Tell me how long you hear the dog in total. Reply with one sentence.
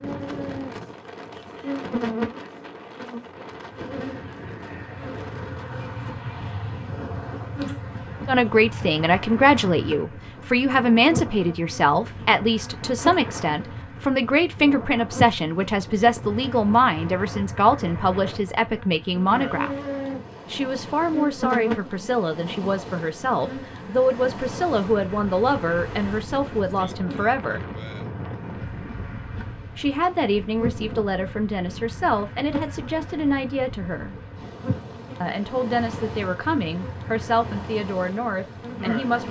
The dog can't be heard in this clip.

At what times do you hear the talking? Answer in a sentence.
You can hear the talking from 8.2 to 19.8 s, from 20.5 to 27.6 s, from 29.8 to 34.1 s and from 35.2 to 39.2 s.